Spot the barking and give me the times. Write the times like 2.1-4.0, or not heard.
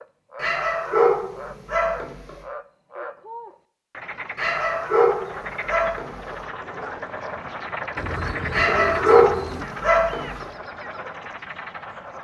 0.4-2.4, 4.3-6.3, 8.5-10.4.